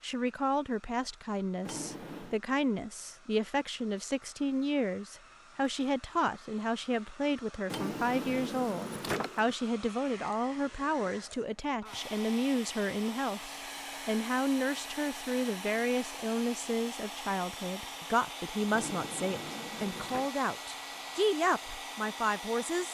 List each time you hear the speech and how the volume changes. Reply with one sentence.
You can hear the speech from 0.0 to 22.8 s, at a steady volume.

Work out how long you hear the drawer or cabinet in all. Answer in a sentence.
The drawer or cabinet can be heard for 4 seconds in total.